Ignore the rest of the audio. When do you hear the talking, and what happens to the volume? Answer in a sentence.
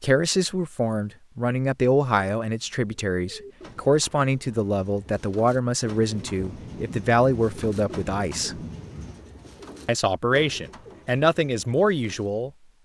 The talking can be heard from 0.0 to 8.6 s, at a steady volume; and briefly from 9.8 to 12.5 s.